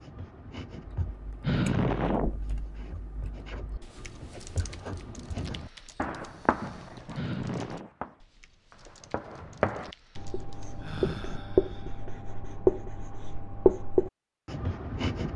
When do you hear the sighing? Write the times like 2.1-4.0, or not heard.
1.4-2.4, 7.2-7.9, 10.8-12.1.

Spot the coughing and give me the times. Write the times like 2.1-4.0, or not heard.
not heard.